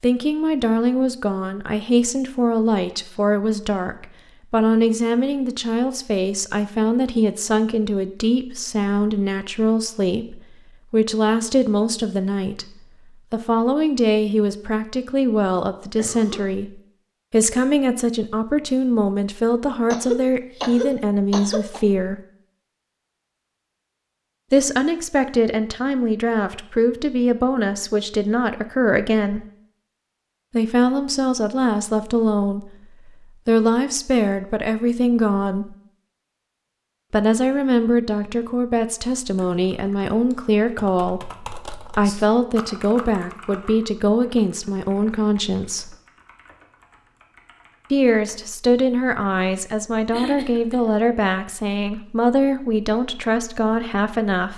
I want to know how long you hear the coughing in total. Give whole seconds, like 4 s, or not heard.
3 s.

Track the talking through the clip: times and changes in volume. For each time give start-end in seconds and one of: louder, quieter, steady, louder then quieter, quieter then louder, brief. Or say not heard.
0.0-12.7 steady
13.3-22.2 steady
24.5-29.4 steady
30.5-35.8 steady
37.1-46.0 steady
47.9-54.5 steady.